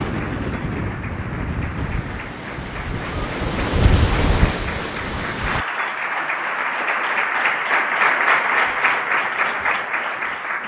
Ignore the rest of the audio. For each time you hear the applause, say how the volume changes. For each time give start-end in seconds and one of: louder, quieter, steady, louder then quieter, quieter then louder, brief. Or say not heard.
0.0-10.6 louder.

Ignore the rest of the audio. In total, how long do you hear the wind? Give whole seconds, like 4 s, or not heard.
6 s.